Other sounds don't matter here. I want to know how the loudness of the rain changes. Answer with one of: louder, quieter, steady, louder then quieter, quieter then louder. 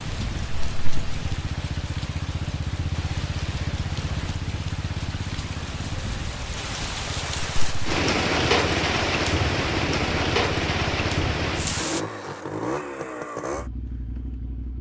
louder.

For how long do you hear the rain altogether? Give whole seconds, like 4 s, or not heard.
12 s.